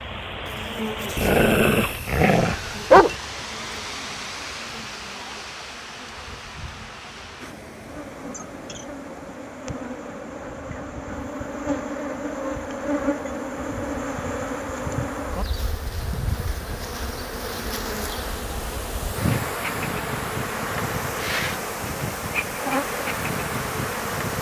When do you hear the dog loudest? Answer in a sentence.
The loudest moment of the dog is at 3 seconds.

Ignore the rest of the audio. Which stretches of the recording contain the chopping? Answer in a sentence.
The chopping can't be heard in this clip.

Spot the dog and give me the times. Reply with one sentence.
The dog can be heard from 1.1 to 3.1 s.